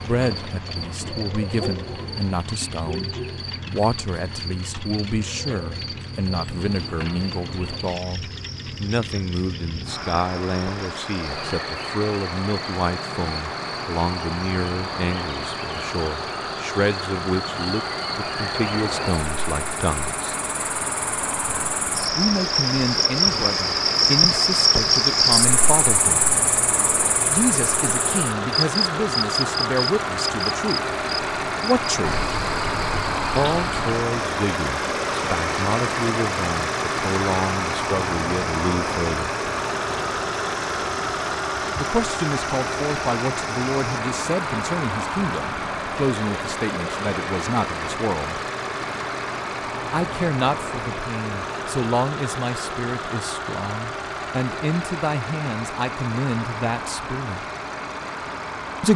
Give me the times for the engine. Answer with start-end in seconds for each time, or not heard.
0.0-58.9.